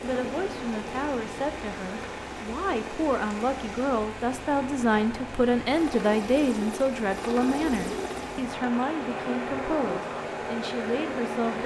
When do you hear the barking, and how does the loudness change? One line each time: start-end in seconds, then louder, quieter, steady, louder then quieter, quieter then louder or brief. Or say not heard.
not heard.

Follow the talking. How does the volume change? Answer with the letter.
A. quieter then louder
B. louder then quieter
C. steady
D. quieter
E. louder
B.